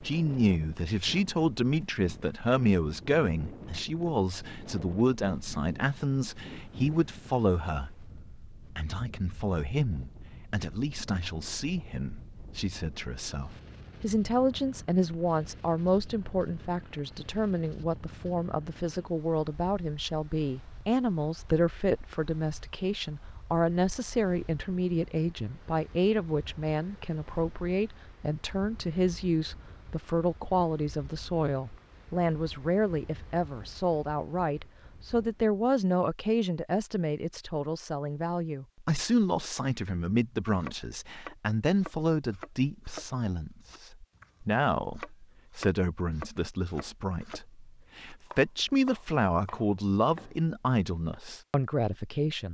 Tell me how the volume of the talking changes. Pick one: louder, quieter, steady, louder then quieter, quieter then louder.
steady.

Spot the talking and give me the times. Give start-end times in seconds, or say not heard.
0.0-52.4.